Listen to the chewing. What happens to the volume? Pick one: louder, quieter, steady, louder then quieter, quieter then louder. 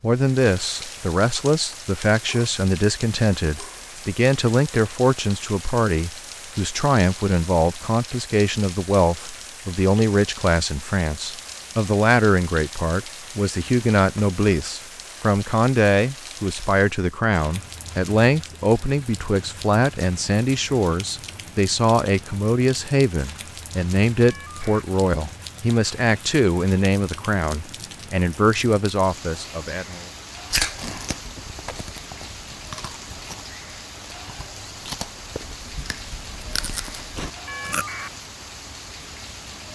quieter then louder.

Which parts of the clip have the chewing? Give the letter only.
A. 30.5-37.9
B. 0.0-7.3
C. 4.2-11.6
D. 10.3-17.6
A.